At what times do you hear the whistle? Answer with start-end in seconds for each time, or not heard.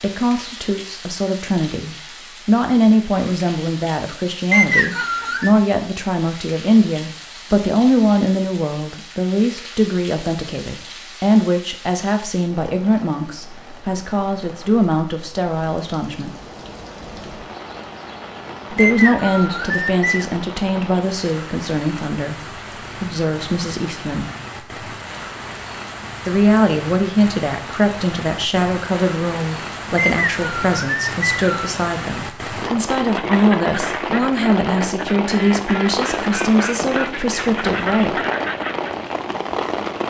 4.5-5.5, 18.8-20.2, 29.9-31.8.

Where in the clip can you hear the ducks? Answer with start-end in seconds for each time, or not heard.
33.0-39.0.